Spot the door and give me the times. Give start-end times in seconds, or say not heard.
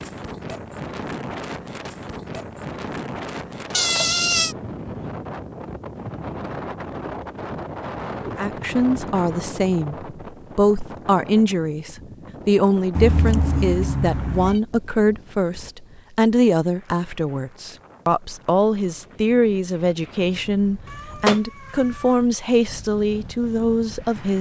not heard.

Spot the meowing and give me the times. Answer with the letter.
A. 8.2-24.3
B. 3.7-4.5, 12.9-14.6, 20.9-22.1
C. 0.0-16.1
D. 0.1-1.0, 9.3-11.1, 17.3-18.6
B.